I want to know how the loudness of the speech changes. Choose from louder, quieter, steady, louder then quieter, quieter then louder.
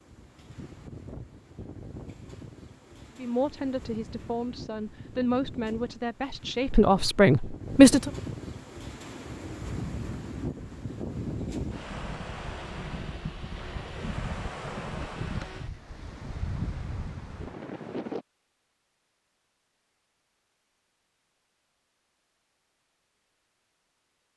louder.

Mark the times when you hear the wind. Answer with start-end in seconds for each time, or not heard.
0.0-18.2.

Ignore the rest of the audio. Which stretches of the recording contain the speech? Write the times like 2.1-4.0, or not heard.
3.1-8.1.